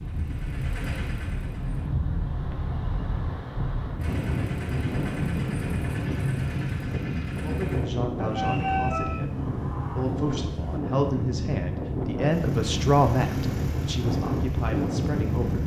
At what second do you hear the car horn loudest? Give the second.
9 s.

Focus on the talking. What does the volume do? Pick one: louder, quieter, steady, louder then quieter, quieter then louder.
louder then quieter.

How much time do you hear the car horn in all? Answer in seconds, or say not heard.
2 s.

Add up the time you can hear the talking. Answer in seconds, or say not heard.
8 s.